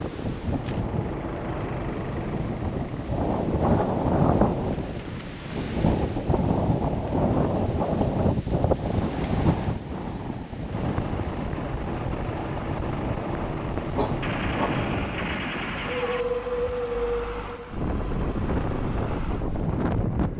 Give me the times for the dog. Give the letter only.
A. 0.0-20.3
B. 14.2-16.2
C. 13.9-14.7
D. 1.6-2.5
C.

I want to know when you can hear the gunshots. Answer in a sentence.
You can hear the gunshots from 14.2 to 16.2 s.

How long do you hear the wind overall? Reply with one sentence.
The wind can be heard for 20 seconds in total.